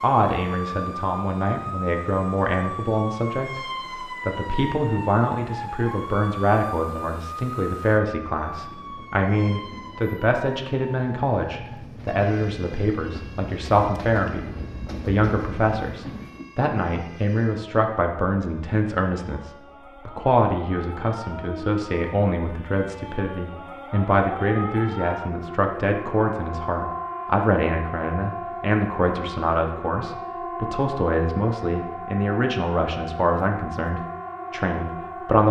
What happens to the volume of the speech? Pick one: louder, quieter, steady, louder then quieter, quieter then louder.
steady.